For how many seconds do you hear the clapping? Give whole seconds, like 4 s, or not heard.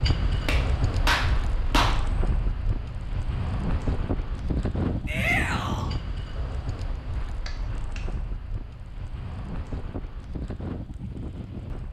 2 s.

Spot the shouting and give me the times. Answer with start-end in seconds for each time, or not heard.
5.0-5.9.